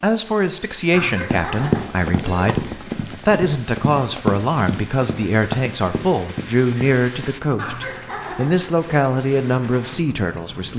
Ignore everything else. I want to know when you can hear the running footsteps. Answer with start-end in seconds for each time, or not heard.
1.2-7.3.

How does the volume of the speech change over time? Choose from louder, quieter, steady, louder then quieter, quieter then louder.
steady.